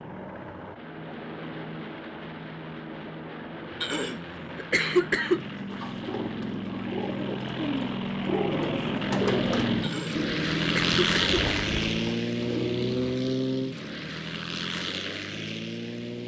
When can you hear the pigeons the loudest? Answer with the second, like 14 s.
9 s.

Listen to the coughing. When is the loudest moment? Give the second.
5 s.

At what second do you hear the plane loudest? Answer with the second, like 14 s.
11 s.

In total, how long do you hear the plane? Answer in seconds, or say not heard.
16 s.